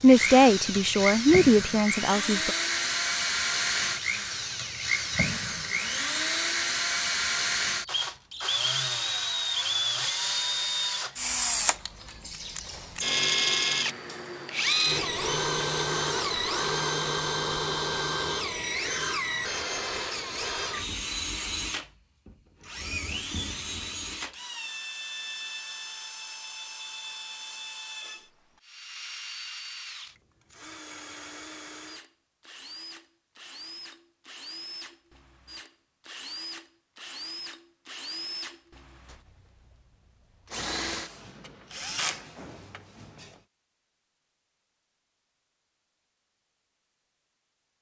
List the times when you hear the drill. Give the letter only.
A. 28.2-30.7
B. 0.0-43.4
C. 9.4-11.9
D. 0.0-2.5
B.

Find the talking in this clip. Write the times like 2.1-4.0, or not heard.
0.0-2.5.